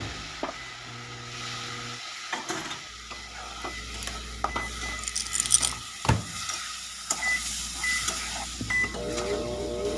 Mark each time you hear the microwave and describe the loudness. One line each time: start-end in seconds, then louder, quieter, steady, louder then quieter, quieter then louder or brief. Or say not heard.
0.0-9.9 louder.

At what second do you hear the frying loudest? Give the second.
8 s.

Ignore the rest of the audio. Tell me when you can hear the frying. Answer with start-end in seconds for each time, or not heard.
0.0-9.9.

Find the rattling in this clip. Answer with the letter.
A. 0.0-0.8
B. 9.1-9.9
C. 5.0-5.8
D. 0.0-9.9
C.